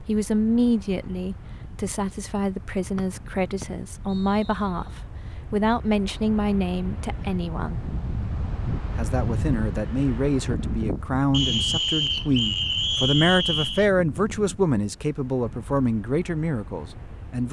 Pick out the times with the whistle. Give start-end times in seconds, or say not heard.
3.0-4.5, 11.3-13.8.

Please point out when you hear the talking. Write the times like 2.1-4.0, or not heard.
0.1-7.8, 8.9-17.4.